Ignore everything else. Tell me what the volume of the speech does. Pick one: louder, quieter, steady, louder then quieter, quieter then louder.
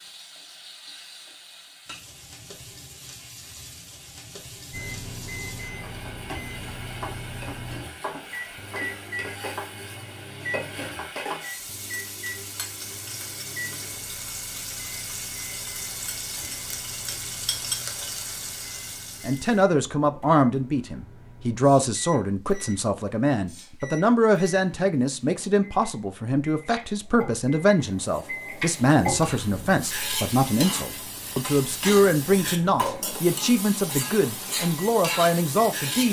steady.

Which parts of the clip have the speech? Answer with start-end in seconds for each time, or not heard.
19.2-36.0.